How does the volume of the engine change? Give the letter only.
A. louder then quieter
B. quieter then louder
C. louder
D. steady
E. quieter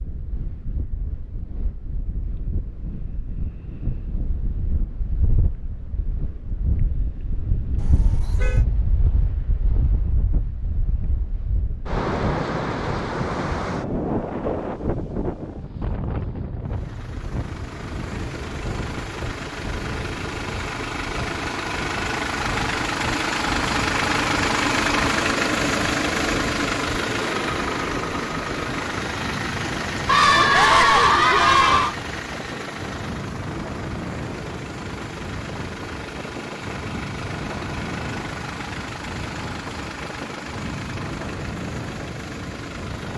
A.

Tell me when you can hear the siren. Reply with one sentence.
You can't hear the siren here.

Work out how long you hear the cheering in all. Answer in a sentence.
The cheering can be heard for 2 seconds in total.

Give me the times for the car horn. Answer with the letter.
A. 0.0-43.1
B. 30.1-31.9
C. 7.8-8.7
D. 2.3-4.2
C.